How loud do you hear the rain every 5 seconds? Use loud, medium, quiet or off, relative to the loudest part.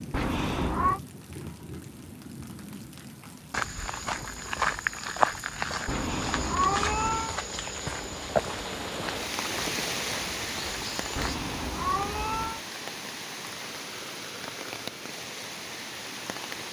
medium, loud, loud, loud.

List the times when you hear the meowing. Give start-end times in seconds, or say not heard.
0.1-1.0, 5.8-7.3, 11.2-12.6.